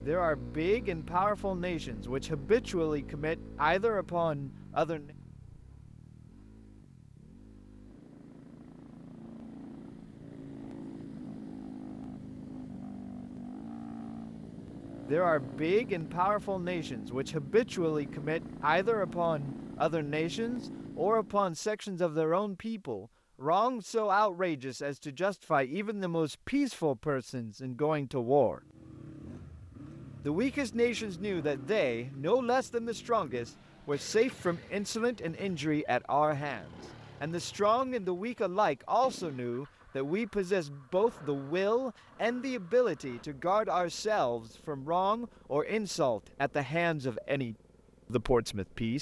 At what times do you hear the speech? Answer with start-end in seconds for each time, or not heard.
0.1-5.1, 15.1-28.6, 30.2-48.9.